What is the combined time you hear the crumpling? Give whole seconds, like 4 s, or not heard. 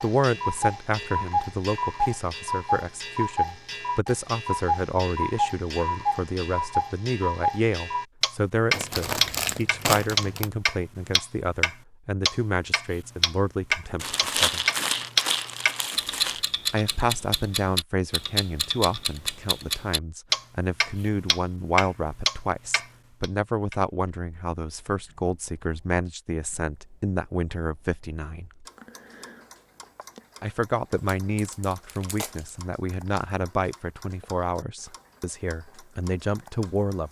6 s.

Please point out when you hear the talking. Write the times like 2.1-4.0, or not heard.
0.0-14.7, 16.7-28.6, 30.4-37.0.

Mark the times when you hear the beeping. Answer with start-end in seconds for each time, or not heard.
not heard.